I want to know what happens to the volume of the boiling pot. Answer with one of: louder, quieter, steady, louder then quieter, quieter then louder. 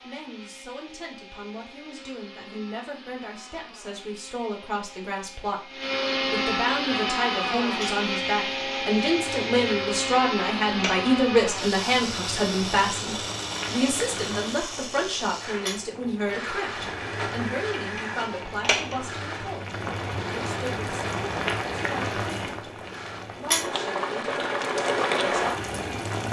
louder.